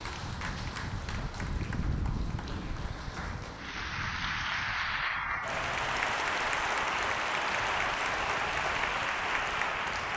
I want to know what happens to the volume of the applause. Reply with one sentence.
The volume of the applause goes up.